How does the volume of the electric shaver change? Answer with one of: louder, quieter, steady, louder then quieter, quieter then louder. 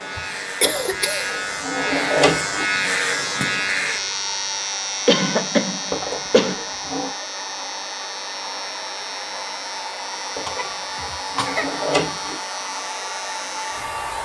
quieter.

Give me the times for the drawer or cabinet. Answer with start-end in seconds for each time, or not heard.
0.7-2.6, 5.9-7.1, 10.3-12.3.